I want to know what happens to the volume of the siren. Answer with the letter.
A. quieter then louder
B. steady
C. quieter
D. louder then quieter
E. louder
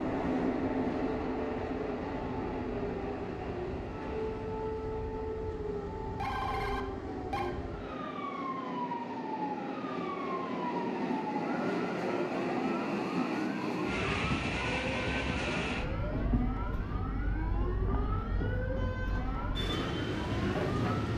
B.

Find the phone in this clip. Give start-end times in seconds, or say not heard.
6.0-7.5.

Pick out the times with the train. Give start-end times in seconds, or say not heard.
0.0-21.1.